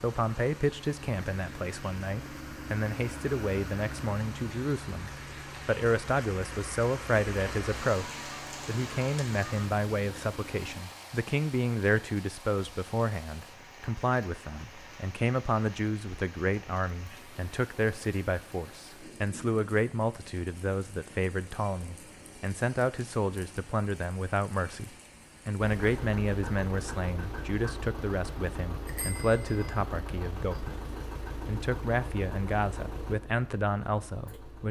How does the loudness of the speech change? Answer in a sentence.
The loudness of the speech stays about the same.